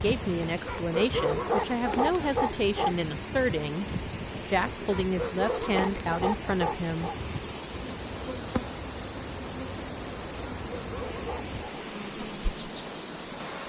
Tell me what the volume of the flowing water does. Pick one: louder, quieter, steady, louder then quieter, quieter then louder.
steady.